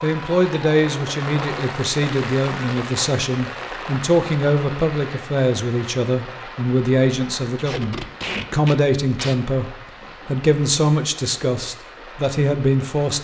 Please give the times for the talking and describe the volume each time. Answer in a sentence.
You can hear the talking from 0.0 to 13.1 s, at a steady volume.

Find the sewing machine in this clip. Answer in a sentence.
The sewing machine can't be heard in this clip.